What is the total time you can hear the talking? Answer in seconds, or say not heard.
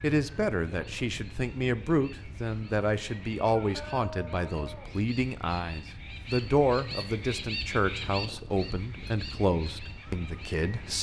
11 s.